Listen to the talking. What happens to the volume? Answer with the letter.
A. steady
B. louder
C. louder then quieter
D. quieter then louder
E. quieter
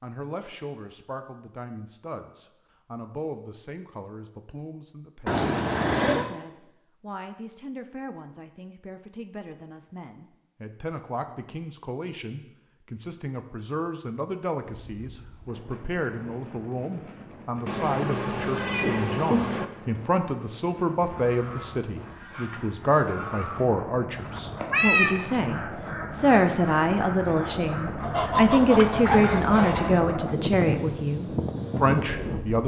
B.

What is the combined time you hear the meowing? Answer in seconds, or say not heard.
4 s.